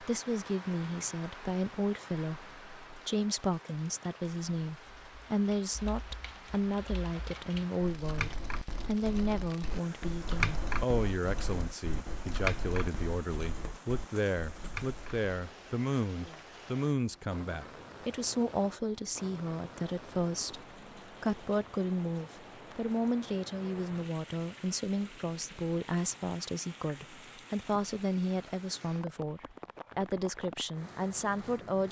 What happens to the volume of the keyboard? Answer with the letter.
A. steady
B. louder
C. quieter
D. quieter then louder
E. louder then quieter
E.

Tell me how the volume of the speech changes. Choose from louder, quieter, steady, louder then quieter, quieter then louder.
steady.